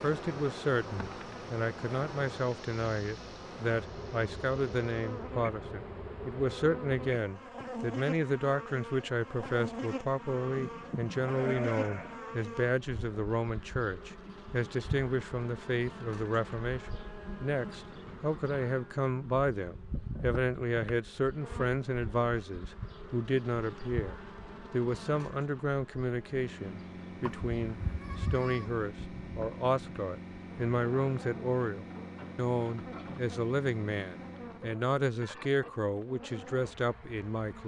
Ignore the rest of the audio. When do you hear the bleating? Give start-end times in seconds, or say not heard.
10.3-12.2, 27.2-28.9.